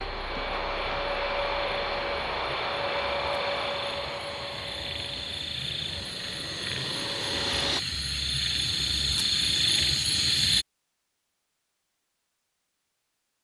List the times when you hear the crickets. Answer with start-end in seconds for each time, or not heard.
0.0-10.7.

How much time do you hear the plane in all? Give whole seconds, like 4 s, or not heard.
8 s.